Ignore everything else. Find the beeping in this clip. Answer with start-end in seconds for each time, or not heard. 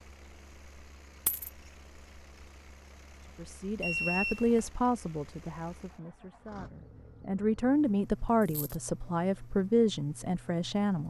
3.8-4.7.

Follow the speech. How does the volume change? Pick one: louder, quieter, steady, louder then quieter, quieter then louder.
quieter then louder.